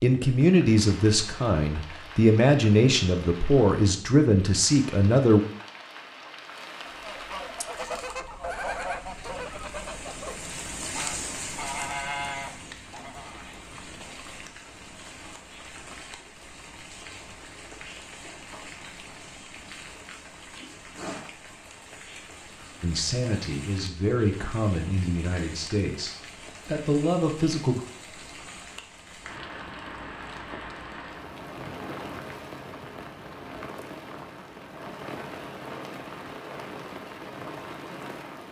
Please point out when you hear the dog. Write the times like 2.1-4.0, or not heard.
not heard.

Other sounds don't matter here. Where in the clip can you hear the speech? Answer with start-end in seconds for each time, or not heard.
0.0-5.4, 22.8-27.8.